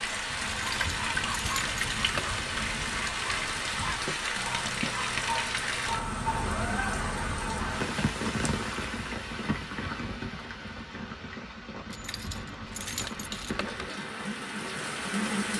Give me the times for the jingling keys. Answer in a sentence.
The jingling keys can be heard from 0.5 to 2.5 s and from 11.9 to 13.9 s.